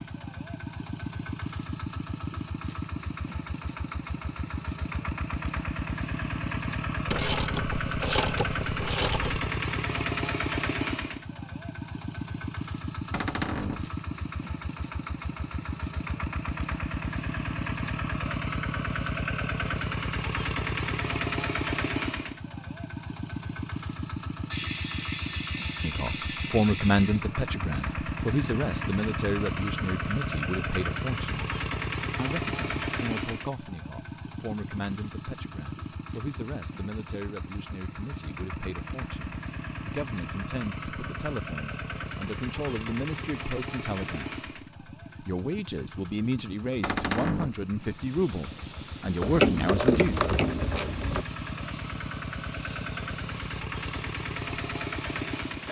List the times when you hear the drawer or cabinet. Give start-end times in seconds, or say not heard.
13.1-13.9, 46.8-47.6.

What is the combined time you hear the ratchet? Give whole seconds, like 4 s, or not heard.
7 s.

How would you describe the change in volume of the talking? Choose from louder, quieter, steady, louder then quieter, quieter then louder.
quieter then louder.